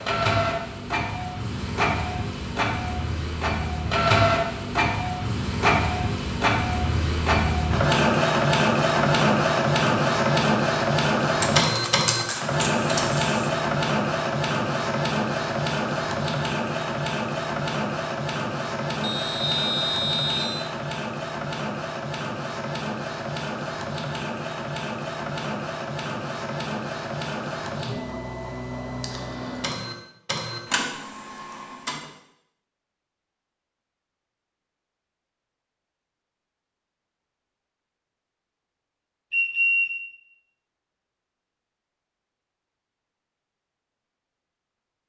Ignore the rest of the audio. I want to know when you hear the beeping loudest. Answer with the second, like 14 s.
40 s.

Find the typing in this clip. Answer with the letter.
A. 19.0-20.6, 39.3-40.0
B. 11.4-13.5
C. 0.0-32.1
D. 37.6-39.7
B.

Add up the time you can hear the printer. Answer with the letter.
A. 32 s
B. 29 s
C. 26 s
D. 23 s
A.